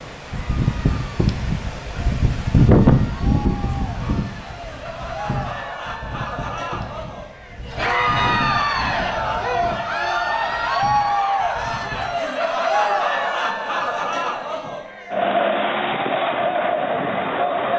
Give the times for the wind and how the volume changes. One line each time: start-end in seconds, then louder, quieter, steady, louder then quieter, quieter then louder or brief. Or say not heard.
0.0-12.2 quieter.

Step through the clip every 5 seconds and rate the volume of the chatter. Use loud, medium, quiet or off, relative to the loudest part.
quiet, loud, loud, loud.